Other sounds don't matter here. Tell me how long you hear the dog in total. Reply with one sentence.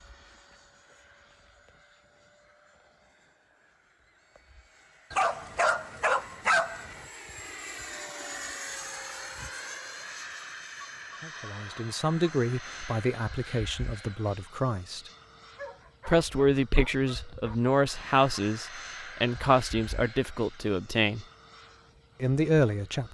The dog can be heard for 4 seconds in total.